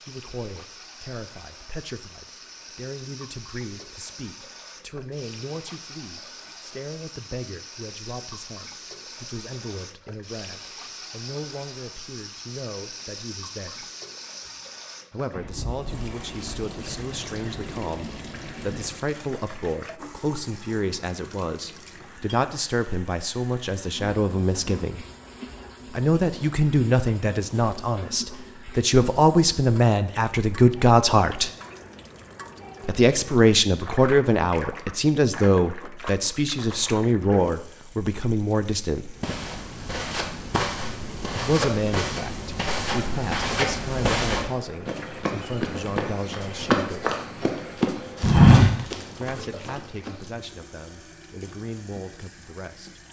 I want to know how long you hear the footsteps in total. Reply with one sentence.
The footsteps can be heard for 11 seconds in total.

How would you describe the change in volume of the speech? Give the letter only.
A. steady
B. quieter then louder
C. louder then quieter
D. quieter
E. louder
C.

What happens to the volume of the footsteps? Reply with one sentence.
The loudness of the footsteps goes up.